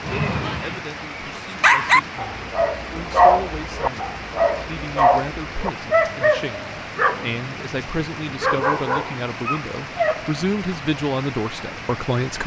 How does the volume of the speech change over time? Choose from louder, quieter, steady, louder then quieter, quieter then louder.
louder.